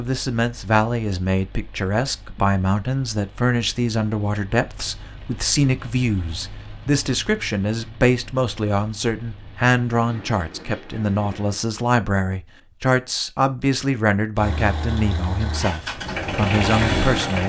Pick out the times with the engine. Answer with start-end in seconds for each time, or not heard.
14.3-17.4.